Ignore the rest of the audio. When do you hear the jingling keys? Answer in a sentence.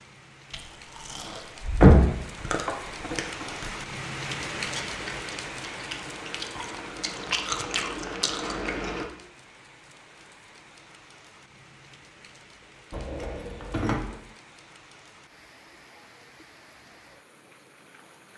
You can hear the jingling keys from 1.8 to 3.5 s and from 12.9 to 14.1 s.